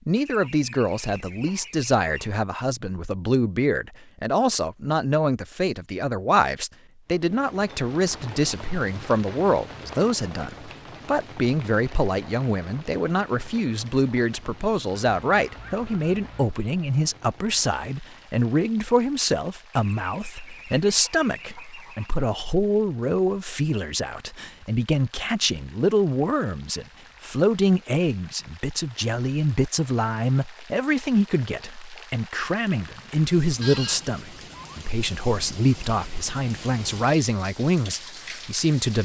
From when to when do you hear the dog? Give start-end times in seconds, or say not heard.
not heard.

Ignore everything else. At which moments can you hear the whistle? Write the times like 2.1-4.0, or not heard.
not heard.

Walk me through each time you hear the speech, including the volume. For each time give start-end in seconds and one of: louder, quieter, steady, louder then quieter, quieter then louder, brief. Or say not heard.
0.1-39.0 steady.